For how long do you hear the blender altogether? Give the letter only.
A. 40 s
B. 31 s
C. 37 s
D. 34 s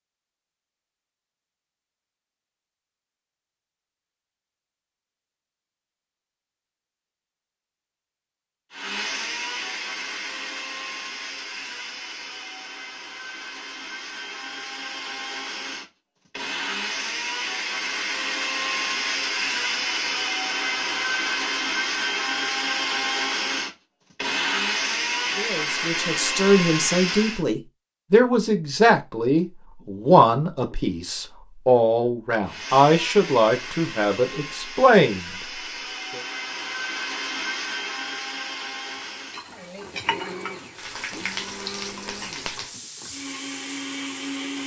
B.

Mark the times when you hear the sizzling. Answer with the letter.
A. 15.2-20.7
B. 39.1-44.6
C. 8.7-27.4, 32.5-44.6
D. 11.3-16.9
B.